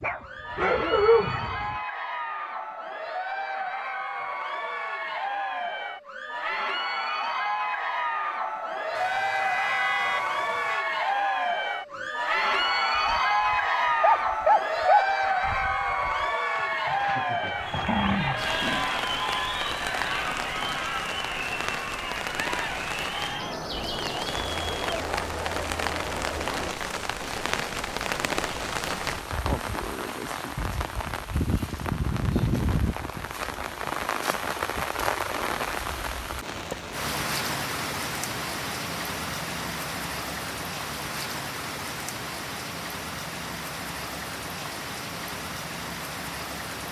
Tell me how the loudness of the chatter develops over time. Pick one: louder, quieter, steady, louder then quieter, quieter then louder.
louder then quieter.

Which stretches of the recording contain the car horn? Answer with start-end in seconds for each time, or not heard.
8.9-10.8.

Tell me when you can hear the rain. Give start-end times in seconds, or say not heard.
18.4-46.8.